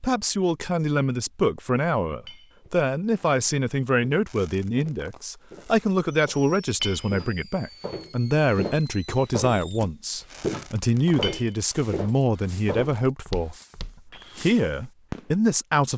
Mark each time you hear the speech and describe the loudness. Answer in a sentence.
The speech can be heard from 0.0 to 15.9 s, at a steady volume.